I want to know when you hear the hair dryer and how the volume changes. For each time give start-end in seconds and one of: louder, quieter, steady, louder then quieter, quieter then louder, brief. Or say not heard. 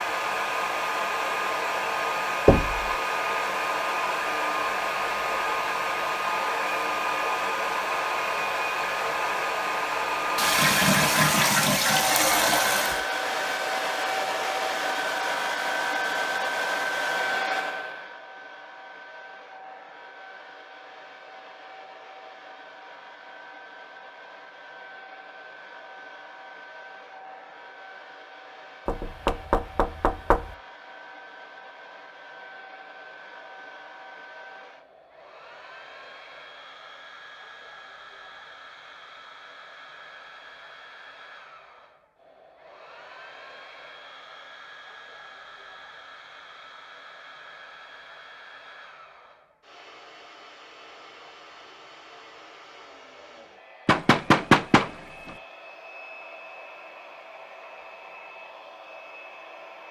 0.0-59.8 quieter.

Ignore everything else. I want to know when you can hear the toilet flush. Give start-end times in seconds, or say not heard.
10.3-13.0.